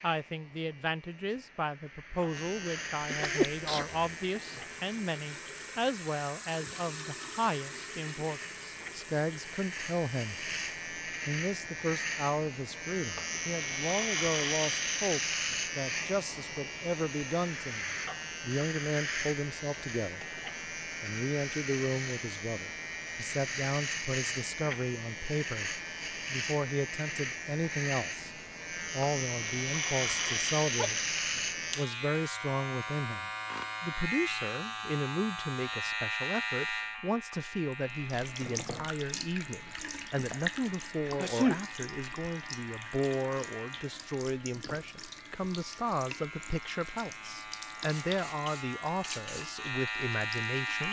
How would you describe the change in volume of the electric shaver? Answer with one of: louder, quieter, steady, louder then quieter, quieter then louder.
louder then quieter.